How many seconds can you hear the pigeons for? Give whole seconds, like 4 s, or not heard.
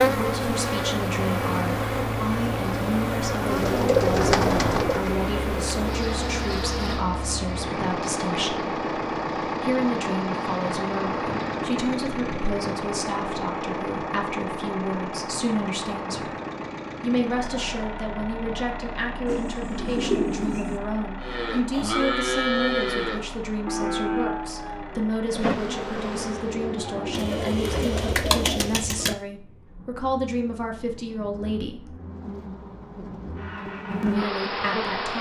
5 s.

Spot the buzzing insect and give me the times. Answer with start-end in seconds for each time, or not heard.
0.0-11.6, 25.2-28.1, 31.9-35.1.